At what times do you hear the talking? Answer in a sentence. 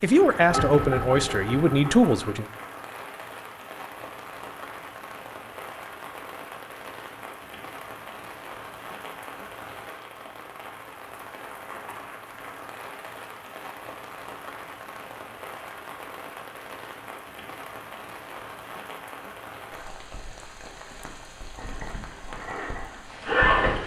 You can hear the talking from 0.0 to 2.5 s.